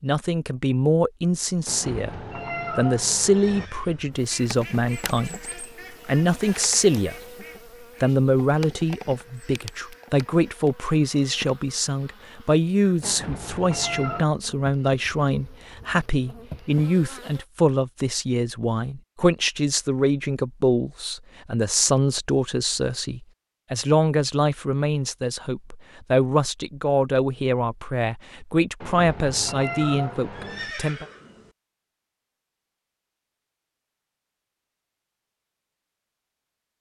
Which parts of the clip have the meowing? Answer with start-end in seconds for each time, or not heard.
1.6-3.7, 13.0-14.2, 28.8-30.7.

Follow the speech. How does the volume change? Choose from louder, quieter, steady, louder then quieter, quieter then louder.
steady.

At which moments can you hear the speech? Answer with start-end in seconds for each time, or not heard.
0.0-7.2, 8.0-31.1.